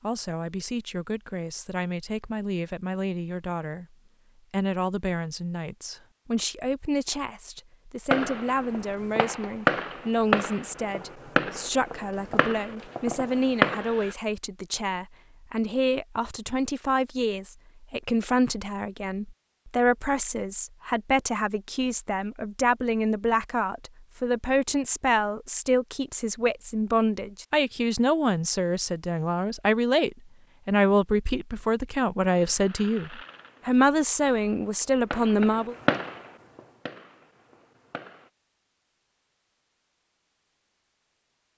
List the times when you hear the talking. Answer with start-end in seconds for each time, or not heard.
0.0-35.8.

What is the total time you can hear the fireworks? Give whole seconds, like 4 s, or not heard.
12 s.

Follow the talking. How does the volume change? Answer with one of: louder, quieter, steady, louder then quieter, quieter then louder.
louder.